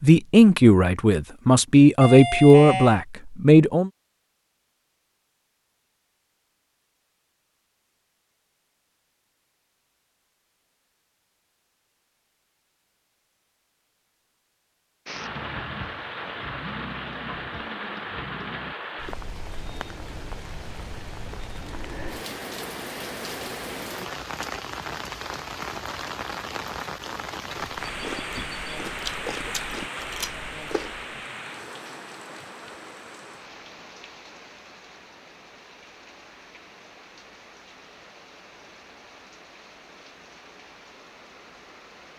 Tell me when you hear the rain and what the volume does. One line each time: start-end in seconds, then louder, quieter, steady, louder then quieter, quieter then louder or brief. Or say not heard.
15.1-42.1 quieter.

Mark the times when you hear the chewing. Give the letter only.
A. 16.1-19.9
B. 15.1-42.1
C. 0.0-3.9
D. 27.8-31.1
D.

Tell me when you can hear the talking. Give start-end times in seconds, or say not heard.
0.0-3.9.